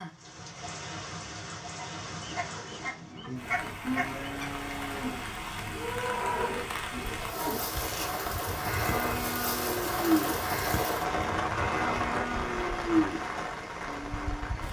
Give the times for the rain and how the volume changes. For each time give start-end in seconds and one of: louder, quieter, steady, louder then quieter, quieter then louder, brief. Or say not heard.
0.0-14.6 louder.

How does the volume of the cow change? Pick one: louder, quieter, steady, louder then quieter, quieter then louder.
louder.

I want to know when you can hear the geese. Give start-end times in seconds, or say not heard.
1.8-4.5.